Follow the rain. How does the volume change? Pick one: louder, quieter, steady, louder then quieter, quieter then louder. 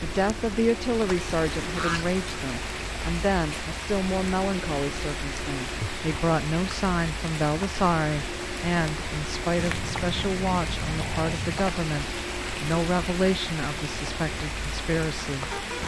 steady.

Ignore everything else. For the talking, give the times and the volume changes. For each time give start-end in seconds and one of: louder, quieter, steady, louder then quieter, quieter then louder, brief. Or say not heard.
0.0-15.6 steady.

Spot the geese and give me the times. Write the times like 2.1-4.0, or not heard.
1.7-2.1, 9.6-11.6.